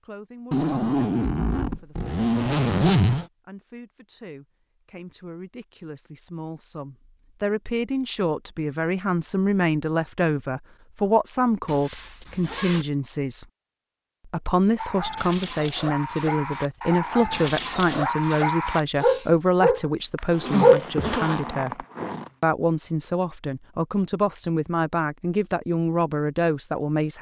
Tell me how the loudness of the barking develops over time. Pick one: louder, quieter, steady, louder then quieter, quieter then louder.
louder.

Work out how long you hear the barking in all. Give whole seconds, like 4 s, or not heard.
6 s.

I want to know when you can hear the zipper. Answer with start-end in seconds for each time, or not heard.
0.5-3.2, 11.7-12.8, 20.3-22.3.